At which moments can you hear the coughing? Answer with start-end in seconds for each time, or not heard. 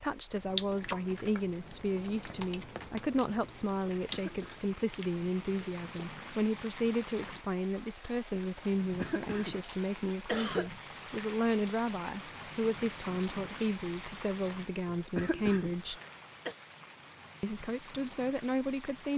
4.1-4.6, 8.7-10.7, 14.8-16.6.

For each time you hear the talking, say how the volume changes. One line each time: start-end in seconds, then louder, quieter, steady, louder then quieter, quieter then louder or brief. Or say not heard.
0.0-16.0 steady
17.4-19.1 brief.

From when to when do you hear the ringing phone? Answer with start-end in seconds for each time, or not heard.
not heard.